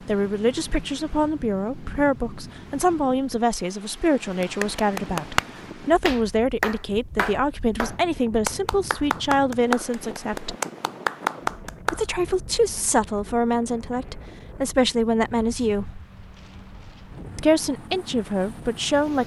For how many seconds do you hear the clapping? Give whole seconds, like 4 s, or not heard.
8 s.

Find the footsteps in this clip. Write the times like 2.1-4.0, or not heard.
not heard.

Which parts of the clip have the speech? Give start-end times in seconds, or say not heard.
0.0-10.6, 11.9-16.0, 17.4-19.2.